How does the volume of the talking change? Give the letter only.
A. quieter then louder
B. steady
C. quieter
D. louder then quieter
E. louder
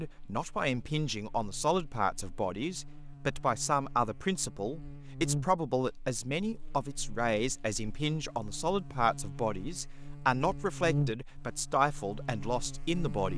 B.